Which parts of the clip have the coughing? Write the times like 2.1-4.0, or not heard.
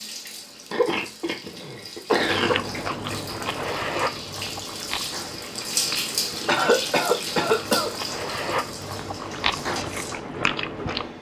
0.7-2.7, 6.5-7.9.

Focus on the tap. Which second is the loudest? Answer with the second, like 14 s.
6 s.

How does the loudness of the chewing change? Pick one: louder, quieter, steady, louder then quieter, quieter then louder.
quieter then louder.